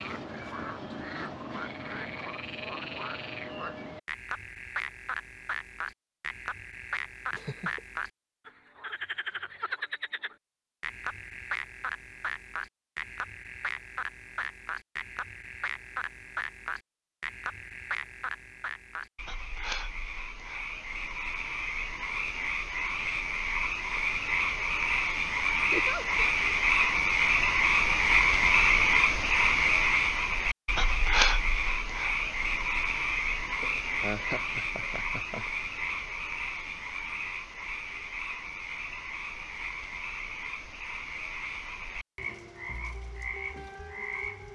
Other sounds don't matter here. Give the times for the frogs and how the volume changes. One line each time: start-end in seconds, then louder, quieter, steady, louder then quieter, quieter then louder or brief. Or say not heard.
0.0-44.5 louder then quieter.